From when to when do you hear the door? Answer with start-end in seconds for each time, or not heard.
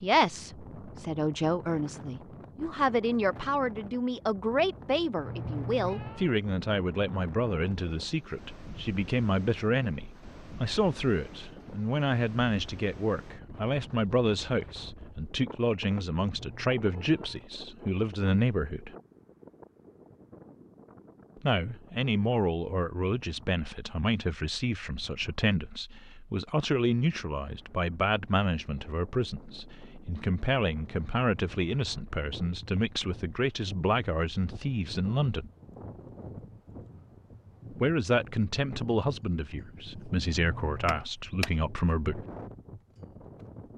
40.9-41.5.